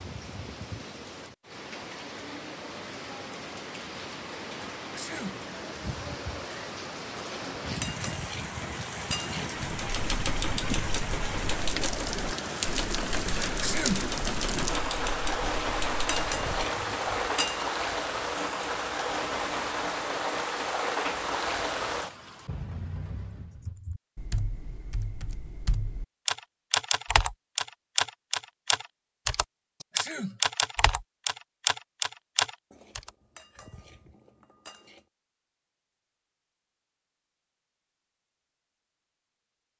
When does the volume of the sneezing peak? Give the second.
14 s.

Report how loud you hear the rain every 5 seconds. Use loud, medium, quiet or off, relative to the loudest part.
medium, medium, loud, loud, loud, off, off, off.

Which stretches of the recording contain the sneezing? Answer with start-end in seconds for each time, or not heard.
5.0-5.4, 13.6-14.1, 29.9-30.4.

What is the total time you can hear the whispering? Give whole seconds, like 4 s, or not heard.
not heard.